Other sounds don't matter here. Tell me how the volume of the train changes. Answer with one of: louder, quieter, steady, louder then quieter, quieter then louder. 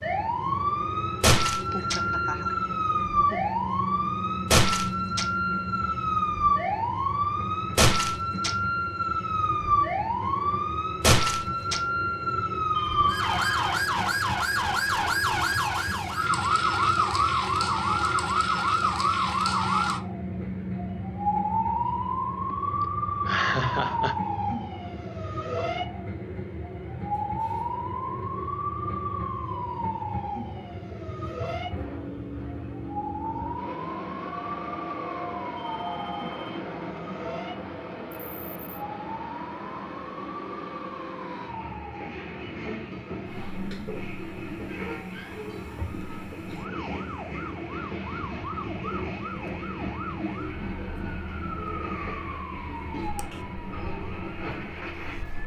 steady.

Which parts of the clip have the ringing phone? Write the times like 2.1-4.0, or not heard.
12.7-13.7, 35.5-36.6.